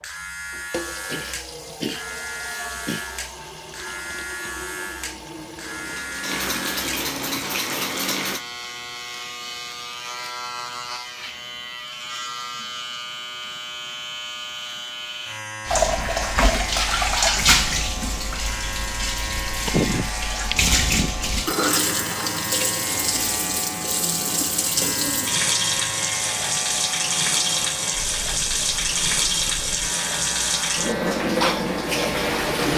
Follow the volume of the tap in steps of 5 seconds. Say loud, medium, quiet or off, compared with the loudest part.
quiet, medium, off, loud, loud, loud, loud.